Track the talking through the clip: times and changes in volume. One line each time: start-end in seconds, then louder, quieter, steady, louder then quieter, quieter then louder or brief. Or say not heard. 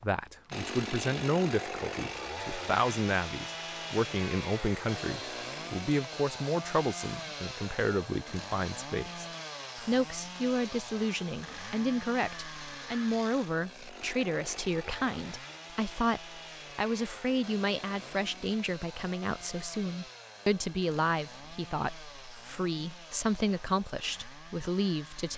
0.0-25.3 steady.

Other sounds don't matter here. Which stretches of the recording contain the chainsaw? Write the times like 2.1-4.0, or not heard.
0.0-25.3.